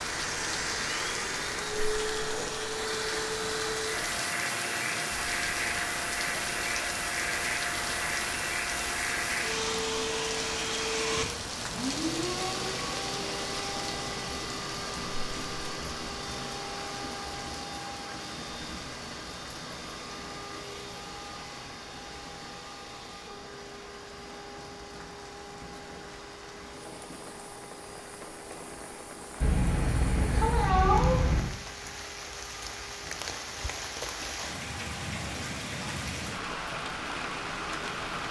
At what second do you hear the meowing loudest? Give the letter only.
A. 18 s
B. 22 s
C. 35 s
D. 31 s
D.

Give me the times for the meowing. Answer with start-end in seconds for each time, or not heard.
29.4-31.4.